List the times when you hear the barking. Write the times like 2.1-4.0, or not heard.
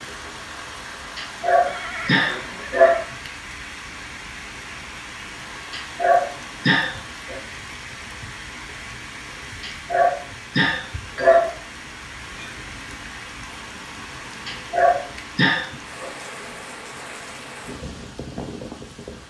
1.1-3.0, 5.7-7.3, 9.6-11.5, 14.4-16.1.